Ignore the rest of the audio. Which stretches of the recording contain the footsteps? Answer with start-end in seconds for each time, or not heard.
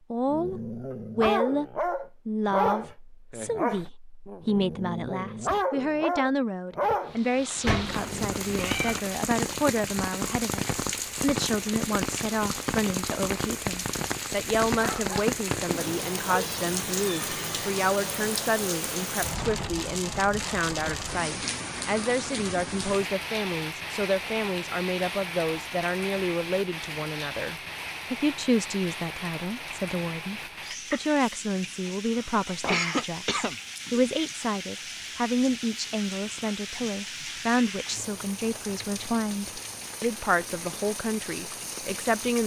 not heard.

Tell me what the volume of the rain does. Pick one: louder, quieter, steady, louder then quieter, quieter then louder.
quieter.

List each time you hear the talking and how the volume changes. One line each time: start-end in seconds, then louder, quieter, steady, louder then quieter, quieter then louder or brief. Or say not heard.
0.1-42.4 steady.